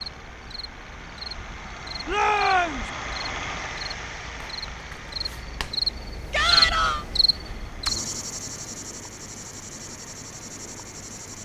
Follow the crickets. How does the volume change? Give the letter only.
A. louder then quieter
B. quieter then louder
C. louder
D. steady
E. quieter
A.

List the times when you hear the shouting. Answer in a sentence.
The shouting can be heard from 2.0 to 2.9 s and from 6.3 to 7.0 s.